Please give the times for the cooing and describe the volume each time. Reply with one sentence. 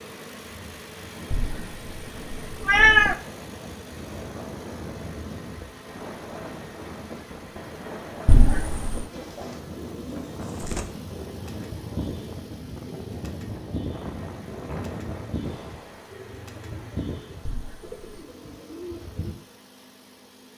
You can hear the cooing from 9.1 to 19.4 s, at a steady volume.